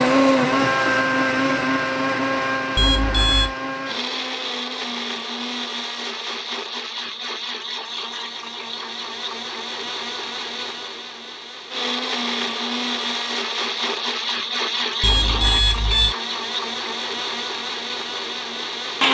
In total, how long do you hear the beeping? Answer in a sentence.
The beeping can be heard for 2 seconds in total.